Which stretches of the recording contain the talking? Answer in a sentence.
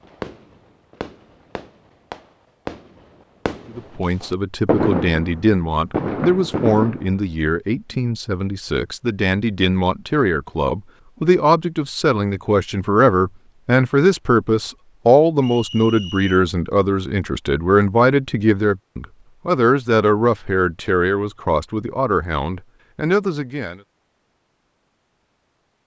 The talking can be heard from 3.7 to 23.8 s.